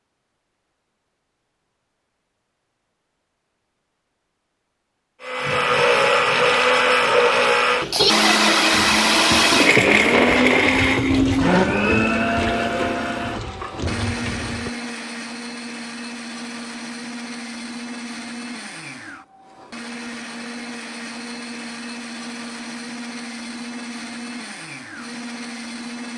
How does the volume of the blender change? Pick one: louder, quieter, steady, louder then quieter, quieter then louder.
quieter.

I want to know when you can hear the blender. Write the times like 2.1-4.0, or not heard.
5.2-26.1.